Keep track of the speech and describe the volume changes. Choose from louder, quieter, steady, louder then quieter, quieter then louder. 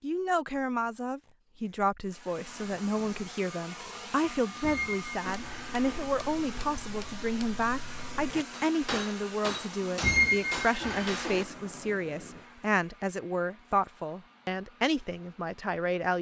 steady.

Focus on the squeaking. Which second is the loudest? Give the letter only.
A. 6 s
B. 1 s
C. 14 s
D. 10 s
D.